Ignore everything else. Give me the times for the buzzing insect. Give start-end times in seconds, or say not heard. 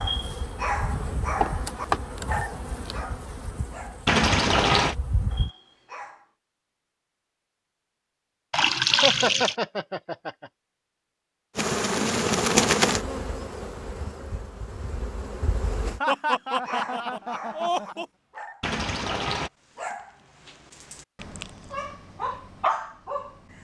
0.0-5.5, 11.6-16.0.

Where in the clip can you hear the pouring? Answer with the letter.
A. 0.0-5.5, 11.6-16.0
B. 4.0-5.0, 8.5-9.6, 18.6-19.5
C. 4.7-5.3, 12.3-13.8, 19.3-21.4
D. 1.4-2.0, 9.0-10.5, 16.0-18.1
B.